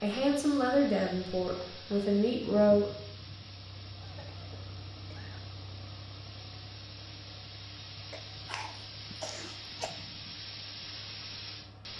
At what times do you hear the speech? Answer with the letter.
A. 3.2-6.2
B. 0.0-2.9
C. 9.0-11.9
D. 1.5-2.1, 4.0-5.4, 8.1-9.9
B.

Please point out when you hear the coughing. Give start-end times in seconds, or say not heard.
1.5-2.1, 4.0-5.4, 8.1-9.9.